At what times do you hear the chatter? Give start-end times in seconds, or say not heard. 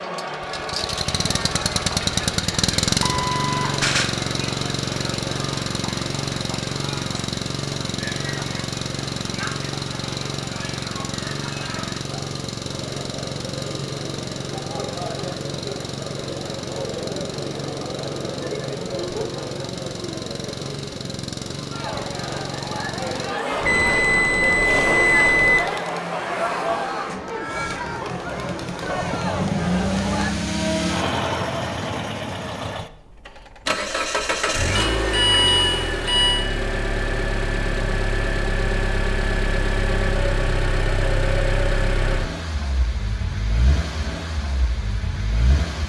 0.0-30.3.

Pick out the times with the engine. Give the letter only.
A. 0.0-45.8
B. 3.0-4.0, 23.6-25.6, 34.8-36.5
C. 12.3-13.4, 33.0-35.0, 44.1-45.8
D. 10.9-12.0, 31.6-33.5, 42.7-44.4
A.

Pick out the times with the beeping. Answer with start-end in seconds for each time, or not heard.
3.0-4.0, 23.6-25.6, 34.8-36.5.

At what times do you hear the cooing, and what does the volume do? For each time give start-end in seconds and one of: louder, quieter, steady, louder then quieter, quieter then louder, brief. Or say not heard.
not heard.